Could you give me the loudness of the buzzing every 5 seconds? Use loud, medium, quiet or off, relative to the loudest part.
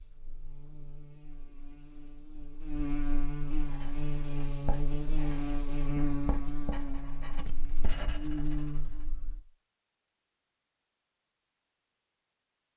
loud, loud, off.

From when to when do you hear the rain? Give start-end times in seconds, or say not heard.
not heard.